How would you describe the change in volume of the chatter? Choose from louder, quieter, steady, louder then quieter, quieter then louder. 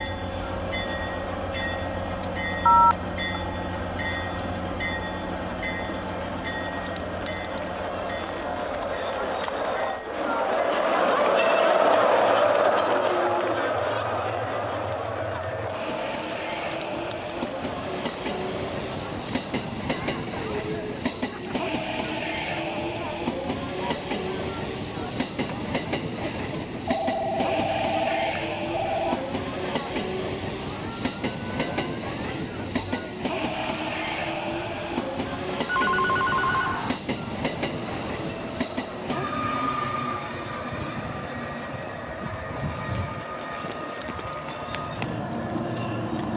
louder then quieter.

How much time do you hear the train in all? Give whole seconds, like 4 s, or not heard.
46 s.